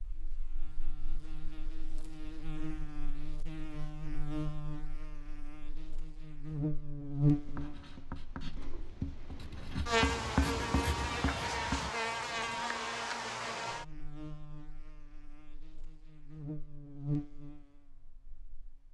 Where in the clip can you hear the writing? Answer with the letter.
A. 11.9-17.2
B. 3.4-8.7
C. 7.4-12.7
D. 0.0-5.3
C.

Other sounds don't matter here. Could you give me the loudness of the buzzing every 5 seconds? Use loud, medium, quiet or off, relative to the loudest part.
medium, loud, loud, medium.